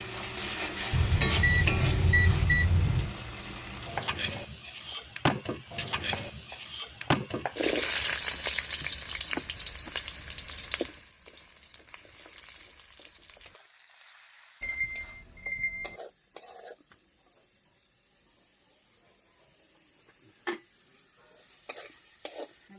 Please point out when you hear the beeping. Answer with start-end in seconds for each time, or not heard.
0.9-3.1, 14.6-16.0.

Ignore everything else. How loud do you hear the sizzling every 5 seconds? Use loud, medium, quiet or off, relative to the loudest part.
loud, loud, quiet, quiet, quiet.